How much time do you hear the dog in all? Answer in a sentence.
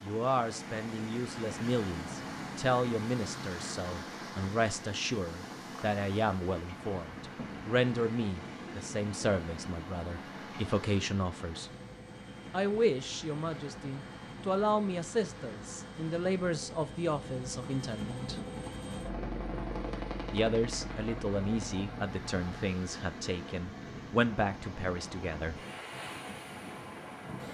The dog can't be heard in this clip.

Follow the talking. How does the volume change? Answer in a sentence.
The volume of the talking stays about the same.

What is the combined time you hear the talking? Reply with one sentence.
The talking can be heard for 23 seconds in total.